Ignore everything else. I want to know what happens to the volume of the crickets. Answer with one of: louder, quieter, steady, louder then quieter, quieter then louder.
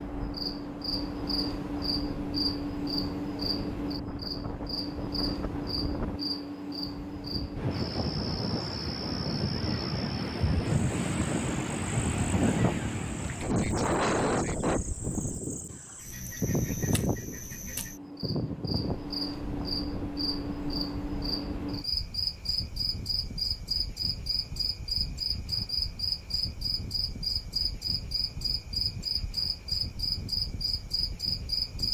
quieter then louder.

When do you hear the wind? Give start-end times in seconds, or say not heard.
0.0-31.8.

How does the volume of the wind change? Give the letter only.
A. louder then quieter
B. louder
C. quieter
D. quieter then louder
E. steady
A.